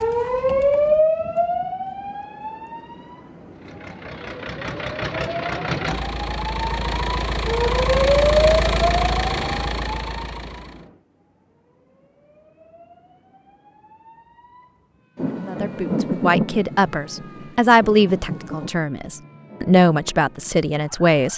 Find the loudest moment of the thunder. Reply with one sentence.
The volume of the thunder peaks at 16 seconds.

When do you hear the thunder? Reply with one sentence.
The thunder can be heard from 15.2 to 18.7 s.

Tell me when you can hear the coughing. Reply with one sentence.
You can't hear the coughing here.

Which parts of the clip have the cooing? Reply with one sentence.
You can't hear the cooing here.